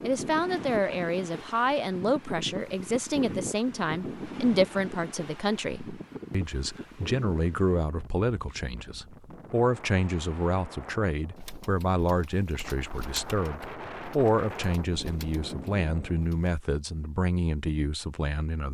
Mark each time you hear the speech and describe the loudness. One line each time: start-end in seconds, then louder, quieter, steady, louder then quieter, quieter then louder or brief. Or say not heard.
0.0-18.7 steady.